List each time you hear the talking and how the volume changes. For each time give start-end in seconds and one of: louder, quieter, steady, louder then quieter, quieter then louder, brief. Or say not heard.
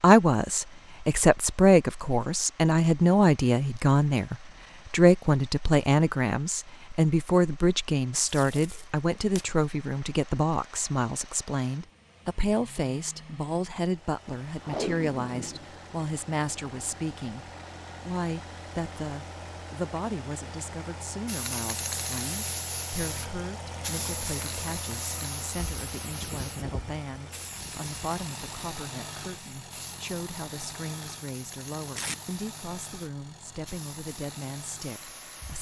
0.0-35.5 quieter.